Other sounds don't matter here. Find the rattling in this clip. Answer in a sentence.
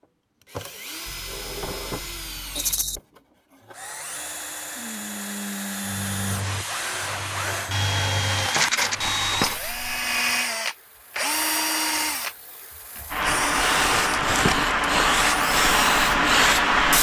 The rattling can be heard from 2.5 to 3.0 s, from 8.3 to 8.9 s and from 13.8 to 15.2 s.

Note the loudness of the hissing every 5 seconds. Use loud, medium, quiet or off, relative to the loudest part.
off, quiet, medium, loud.